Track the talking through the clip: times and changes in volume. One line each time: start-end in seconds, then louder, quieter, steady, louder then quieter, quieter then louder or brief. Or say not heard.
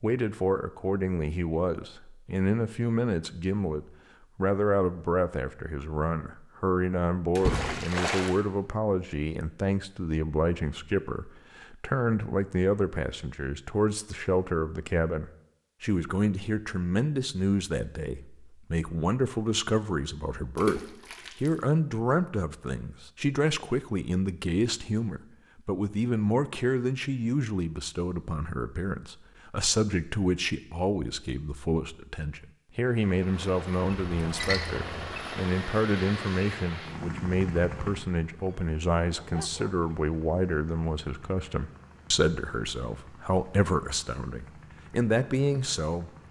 0.0-46.1 steady.